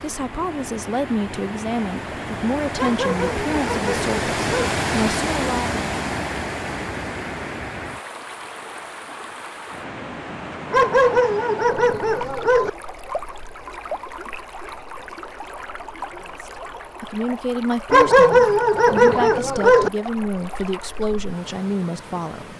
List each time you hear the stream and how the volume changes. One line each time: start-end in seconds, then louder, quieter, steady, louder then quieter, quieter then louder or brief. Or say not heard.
0.0-22.5 quieter.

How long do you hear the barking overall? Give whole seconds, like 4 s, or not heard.
6 s.